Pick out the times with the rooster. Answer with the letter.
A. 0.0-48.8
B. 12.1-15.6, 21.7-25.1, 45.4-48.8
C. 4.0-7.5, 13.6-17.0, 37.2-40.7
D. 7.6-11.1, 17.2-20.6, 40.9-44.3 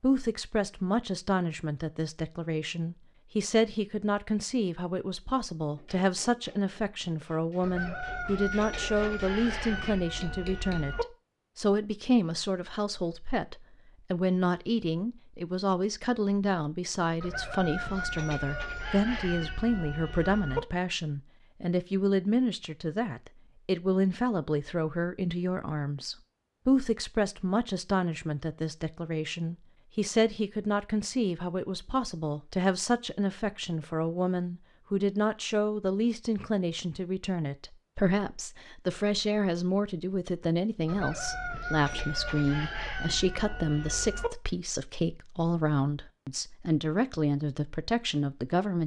D.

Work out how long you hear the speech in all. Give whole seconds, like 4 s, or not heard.
49 s.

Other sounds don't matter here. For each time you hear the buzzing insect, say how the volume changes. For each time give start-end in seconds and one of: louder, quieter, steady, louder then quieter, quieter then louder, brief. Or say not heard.
not heard.